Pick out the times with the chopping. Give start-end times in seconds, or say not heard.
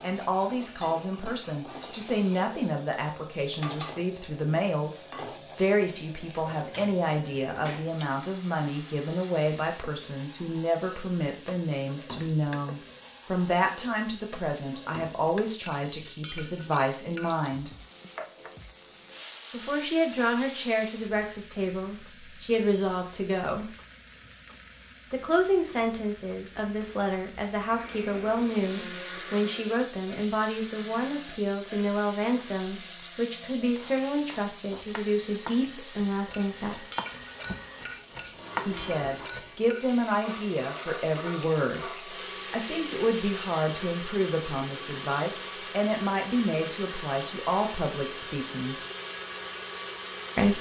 33.8-39.7.